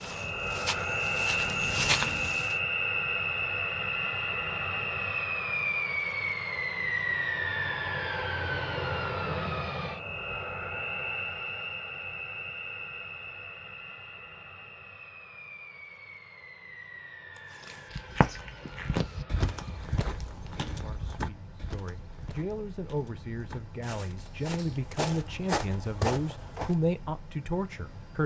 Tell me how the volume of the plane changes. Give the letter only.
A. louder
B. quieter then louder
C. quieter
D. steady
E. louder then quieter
C.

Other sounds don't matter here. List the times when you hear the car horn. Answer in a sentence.
You can't hear the car horn here.